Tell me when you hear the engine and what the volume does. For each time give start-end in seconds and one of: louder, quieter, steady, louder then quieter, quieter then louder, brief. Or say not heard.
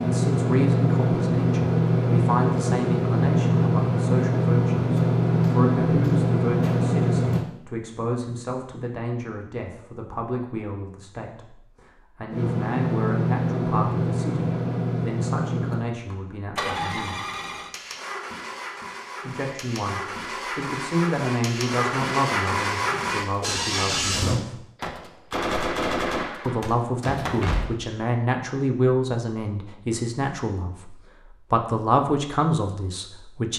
0.0-7.5 steady
12.3-24.4 quieter then louder.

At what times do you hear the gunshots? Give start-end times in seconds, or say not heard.
5.0-7.5, 24.8-27.7.